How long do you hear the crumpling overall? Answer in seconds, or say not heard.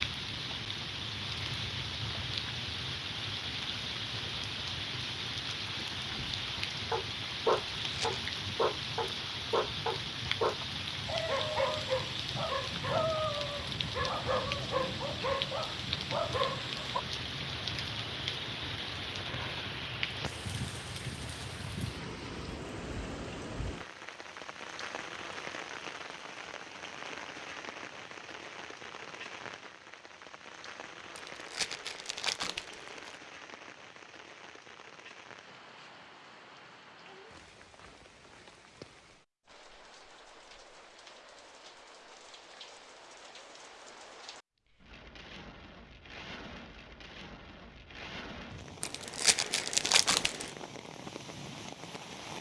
4 s.